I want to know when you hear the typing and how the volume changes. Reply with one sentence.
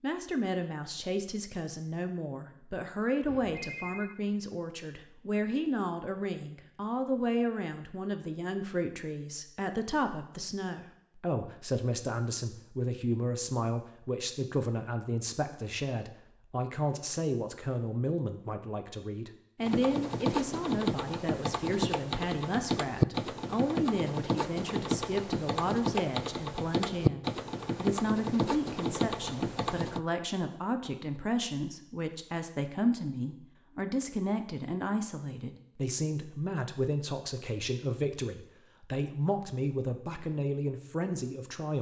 The typing can be heard from 19.6 to 30.0 s, at a steady volume.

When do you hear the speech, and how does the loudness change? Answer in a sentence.
You can hear the speech from 0.0 to 41.7 s, at a steady volume.